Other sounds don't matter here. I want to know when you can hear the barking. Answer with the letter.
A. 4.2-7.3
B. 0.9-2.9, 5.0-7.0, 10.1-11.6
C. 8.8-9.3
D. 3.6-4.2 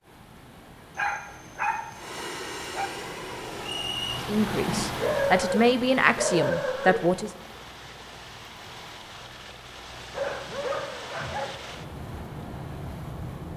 B.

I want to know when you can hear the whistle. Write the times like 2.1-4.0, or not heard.
3.6-4.2.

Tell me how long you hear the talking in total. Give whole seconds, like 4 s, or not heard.
3 s.